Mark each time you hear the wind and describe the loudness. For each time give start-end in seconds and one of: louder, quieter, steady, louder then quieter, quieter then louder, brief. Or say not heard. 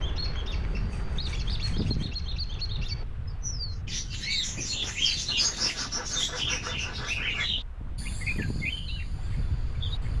0.0-10.1 quieter then louder.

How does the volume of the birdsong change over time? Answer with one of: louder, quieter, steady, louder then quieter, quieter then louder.
louder then quieter.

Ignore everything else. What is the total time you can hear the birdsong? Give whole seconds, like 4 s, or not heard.
10 s.